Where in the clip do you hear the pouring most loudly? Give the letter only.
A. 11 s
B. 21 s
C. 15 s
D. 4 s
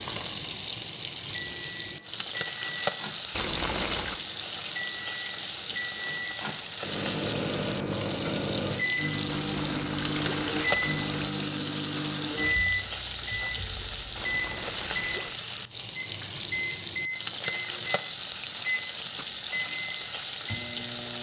D.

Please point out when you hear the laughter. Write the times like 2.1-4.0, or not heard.
not heard.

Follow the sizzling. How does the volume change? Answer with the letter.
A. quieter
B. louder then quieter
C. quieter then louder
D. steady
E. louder
D.